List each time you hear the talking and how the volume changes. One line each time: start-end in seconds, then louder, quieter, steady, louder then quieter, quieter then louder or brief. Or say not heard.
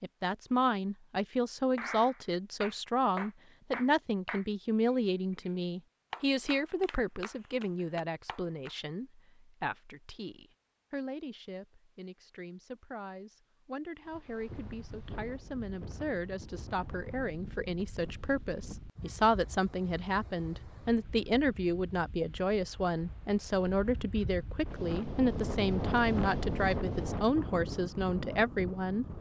0.0-29.1 quieter then louder.